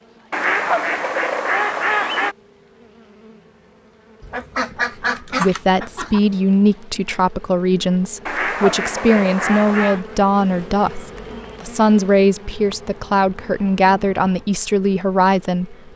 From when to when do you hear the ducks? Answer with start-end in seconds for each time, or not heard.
0.3-2.4, 4.2-6.2, 8.2-10.0, 12.5-14.4.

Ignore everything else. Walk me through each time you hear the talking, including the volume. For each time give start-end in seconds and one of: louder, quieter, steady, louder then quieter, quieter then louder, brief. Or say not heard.
5.3-15.9 steady.